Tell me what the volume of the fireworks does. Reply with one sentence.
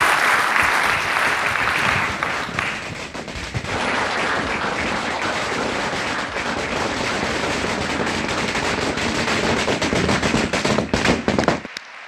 The volume of the fireworks goes up.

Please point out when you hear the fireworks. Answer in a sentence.
You can hear the fireworks from 1.1 to 11.7 s.